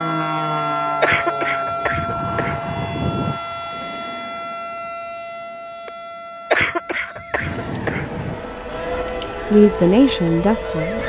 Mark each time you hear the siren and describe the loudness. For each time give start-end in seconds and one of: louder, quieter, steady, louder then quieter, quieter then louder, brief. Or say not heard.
0.0-11.0 quieter then louder.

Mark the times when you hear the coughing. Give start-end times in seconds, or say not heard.
1.0-3.4, 6.5-8.4.